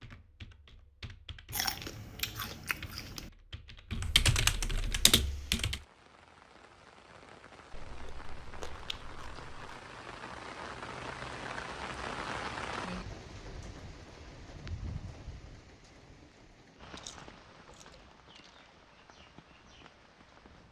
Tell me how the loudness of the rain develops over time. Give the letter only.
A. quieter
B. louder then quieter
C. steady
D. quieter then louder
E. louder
B.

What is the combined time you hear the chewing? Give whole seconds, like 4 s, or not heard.
6 s.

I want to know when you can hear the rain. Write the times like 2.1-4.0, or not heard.
5.0-20.6.